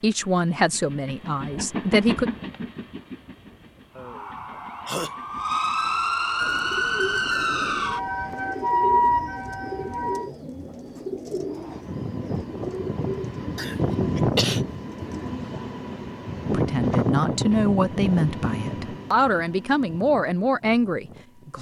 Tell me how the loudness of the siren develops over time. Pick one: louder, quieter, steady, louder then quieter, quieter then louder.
louder.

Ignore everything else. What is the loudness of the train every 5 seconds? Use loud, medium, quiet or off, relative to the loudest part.
medium, quiet, loud, loud, quiet.